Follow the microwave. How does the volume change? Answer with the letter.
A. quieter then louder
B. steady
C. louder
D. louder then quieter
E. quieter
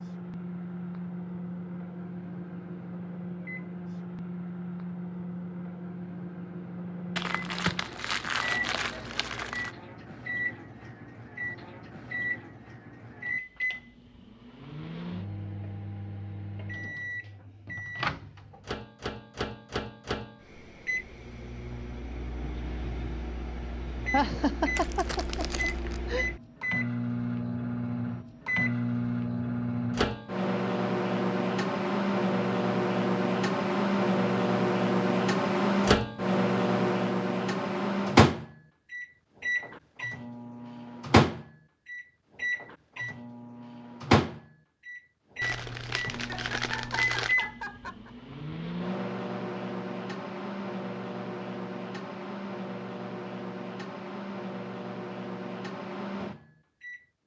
D.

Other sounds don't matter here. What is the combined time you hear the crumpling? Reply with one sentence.
The crumpling can be heard for 6 seconds in total.